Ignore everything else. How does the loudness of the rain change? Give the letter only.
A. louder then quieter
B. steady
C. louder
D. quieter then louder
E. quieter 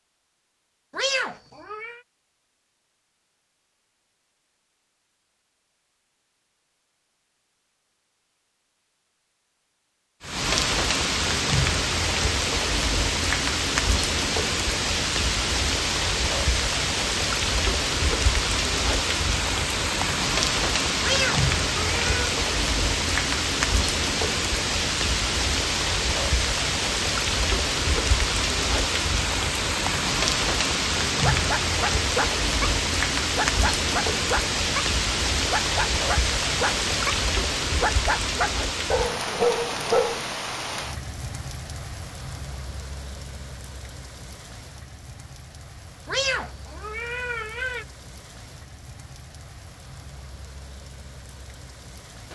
E.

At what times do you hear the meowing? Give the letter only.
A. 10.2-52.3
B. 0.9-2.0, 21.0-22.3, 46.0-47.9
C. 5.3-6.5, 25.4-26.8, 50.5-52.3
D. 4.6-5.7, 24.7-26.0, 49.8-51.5
B.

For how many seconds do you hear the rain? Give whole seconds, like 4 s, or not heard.
42 s.